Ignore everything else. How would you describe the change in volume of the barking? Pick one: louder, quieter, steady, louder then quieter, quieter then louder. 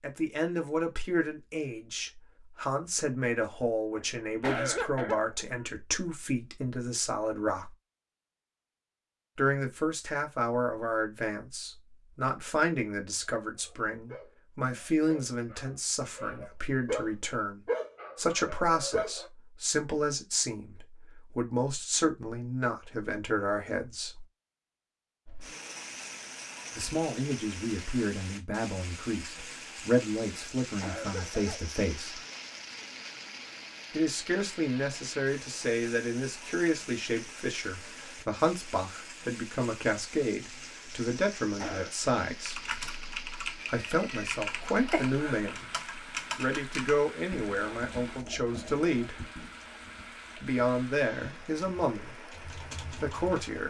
louder then quieter.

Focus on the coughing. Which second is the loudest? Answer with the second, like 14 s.
5 s.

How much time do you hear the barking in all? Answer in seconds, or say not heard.
6 s.